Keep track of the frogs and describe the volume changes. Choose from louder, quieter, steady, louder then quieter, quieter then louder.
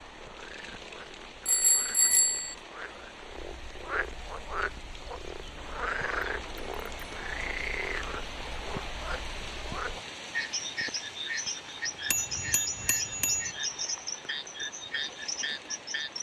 louder.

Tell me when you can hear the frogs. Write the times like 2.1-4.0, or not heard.
0.0-16.1.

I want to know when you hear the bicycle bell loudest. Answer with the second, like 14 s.
2 s.